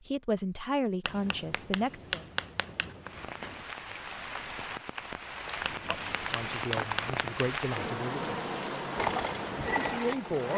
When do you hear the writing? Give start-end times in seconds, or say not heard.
1.1-3.6, 5.7-7.5.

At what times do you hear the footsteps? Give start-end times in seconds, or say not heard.
not heard.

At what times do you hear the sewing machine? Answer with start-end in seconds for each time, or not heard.
8.9-10.5.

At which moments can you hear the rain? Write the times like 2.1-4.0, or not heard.
3.0-10.5.